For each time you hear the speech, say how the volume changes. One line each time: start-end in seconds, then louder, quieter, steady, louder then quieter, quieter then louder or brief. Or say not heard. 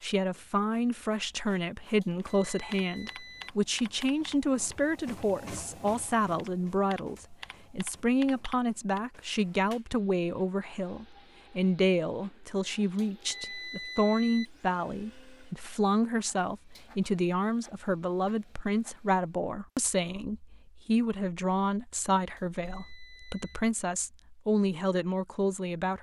0.0-25.9 steady.